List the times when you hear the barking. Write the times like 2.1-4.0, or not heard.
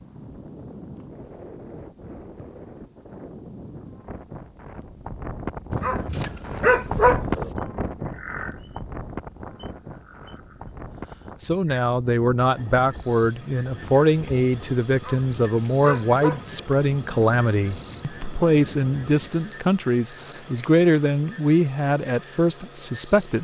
5.7-7.5, 14.9-16.7.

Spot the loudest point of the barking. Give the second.
7 s.